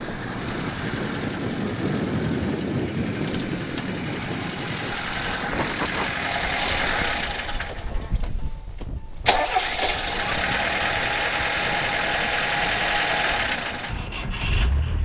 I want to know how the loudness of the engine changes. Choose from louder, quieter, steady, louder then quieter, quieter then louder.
louder.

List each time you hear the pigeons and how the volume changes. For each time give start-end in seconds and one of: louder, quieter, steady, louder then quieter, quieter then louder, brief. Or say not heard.
not heard.